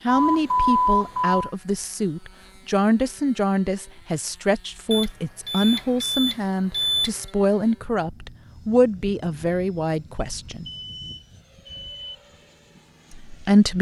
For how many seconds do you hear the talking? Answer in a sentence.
You can hear the talking for 11 seconds altogether.